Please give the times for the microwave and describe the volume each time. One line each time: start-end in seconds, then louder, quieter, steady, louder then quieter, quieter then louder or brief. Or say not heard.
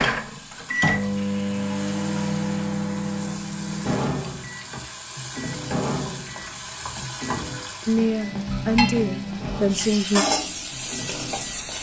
0.0-11.7 quieter.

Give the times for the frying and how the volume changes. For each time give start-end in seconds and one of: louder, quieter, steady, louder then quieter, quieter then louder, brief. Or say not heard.
0.0-11.7 louder.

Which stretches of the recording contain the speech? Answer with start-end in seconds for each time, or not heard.
7.8-10.2.